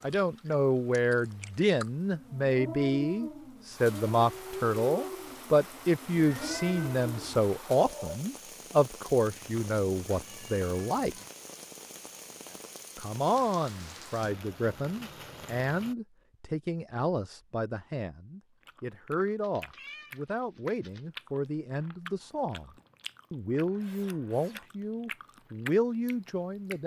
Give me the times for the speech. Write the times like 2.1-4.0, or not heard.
0.0-11.2, 12.9-22.7, 23.3-26.8.